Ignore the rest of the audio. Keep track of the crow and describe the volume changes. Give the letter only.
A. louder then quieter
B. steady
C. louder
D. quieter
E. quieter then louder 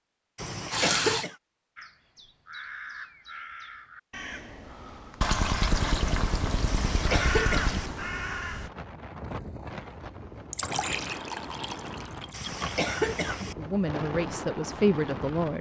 C.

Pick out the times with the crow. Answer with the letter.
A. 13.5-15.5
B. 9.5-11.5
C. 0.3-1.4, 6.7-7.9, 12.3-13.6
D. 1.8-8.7
D.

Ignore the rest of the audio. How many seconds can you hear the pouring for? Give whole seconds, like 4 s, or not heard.
6 s.